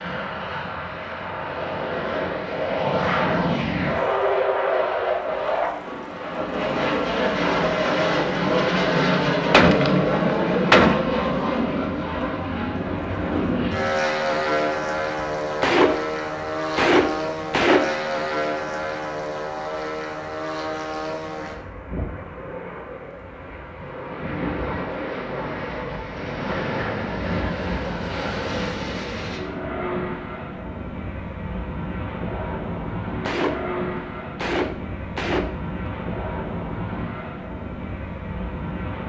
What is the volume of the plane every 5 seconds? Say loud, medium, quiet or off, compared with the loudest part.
loud, loud, loud, medium, medium, medium, medium, medium.